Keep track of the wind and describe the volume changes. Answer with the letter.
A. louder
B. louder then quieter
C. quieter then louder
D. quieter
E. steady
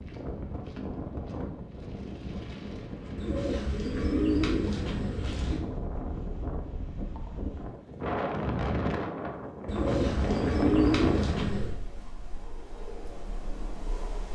B.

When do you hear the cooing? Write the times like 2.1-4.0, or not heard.
3.1-5.6, 9.7-11.8.